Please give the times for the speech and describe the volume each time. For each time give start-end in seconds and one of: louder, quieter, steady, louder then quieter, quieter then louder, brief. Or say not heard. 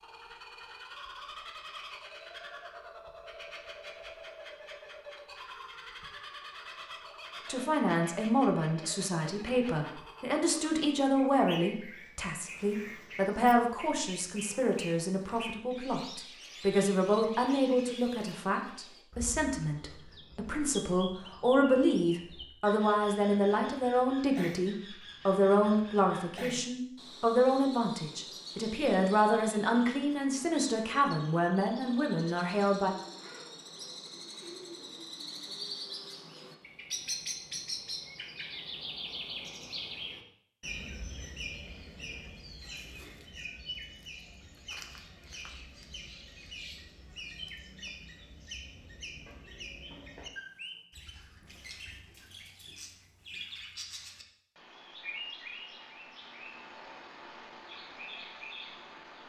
7.5-32.9 steady.